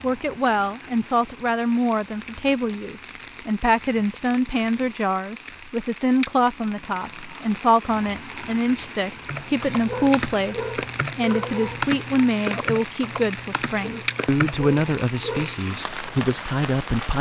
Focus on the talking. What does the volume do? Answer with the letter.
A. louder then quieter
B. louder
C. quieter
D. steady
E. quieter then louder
D.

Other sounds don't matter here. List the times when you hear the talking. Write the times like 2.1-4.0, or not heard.
0.0-17.1.